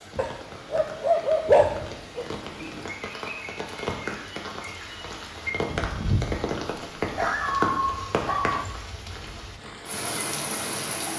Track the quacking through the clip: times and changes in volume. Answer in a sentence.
The quacking can't be heard in this clip.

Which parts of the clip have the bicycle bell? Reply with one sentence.
The bicycle bell can't be heard in this clip.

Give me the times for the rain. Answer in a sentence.
The rain can be heard from 0.0 to 11.1 s.